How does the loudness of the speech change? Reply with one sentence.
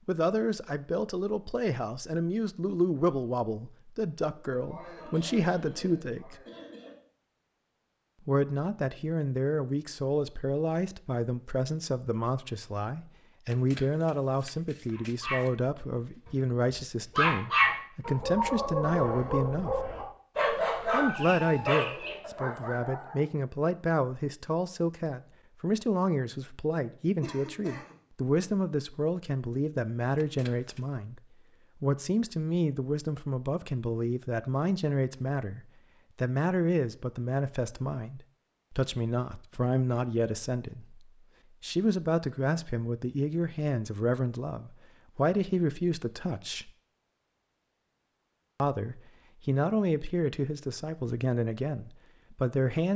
The loudness of the speech stays about the same.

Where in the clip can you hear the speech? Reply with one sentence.
You can hear the speech from 0.1 to 6.4 s, from 8.2 to 19.8 s, from 20.9 to 46.7 s and from 48.6 to 52.9 s.